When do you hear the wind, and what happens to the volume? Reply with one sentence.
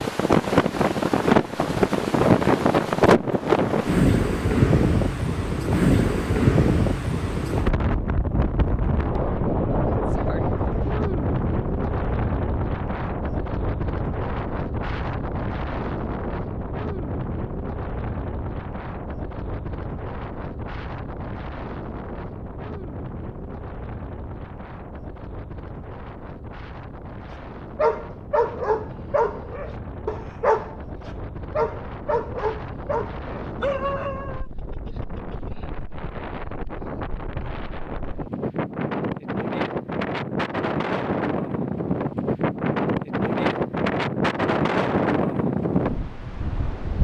You can hear the wind from 0.0 to 46.9 s, getting quieter then louder.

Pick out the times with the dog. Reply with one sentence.
You can hear the dog from 27.8 to 34.5 s.